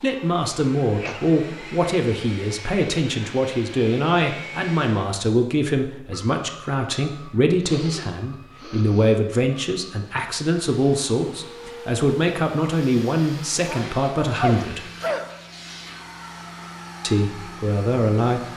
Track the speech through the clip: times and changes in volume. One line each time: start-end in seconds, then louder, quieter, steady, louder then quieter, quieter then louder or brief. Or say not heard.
0.0-14.8 steady
17.0-18.4 brief.